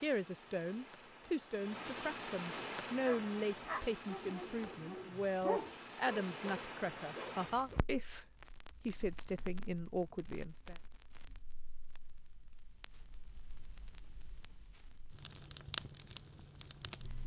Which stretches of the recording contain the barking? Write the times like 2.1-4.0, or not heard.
3.0-7.8.